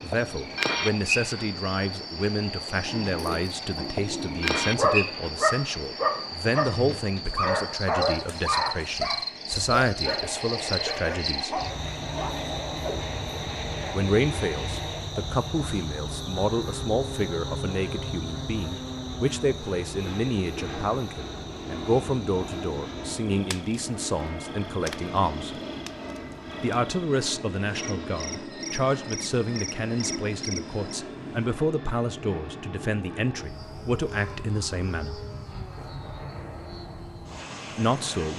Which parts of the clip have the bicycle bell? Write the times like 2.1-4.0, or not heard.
not heard.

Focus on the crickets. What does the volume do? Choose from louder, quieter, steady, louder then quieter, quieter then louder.
quieter.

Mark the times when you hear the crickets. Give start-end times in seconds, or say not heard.
0.0-31.5.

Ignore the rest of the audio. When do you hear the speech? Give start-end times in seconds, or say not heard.
0.0-11.6, 13.9-25.6, 26.6-35.2, 37.8-38.3.